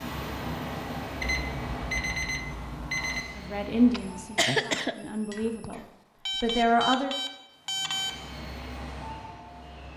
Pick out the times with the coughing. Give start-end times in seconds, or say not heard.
3.9-5.8.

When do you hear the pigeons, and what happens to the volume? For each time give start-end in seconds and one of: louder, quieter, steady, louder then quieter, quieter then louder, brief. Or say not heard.
not heard.